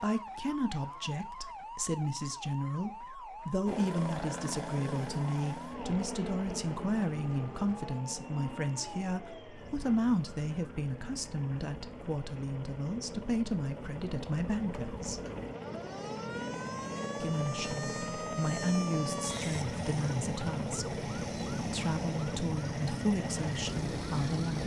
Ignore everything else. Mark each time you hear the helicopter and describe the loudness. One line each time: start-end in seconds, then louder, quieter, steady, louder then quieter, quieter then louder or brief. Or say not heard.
3.6-24.6 quieter then louder.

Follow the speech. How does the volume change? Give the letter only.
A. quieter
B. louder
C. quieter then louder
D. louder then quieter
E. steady
E.